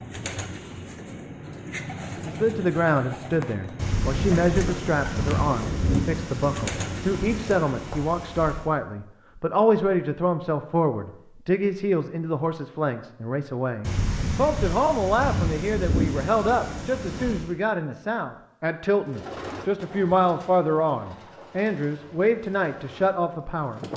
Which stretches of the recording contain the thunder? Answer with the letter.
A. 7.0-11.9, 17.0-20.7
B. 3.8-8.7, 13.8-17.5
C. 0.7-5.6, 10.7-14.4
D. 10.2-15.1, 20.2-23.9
B.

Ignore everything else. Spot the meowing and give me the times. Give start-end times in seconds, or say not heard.
not heard.